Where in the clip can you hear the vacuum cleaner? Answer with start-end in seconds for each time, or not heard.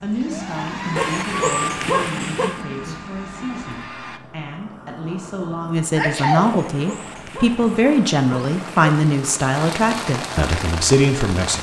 0.1-4.2.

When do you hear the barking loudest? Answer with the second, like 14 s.
2 s.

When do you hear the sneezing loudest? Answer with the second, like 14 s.
6 s.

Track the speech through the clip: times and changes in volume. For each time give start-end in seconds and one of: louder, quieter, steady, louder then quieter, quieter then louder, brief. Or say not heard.
0.0-11.5 louder.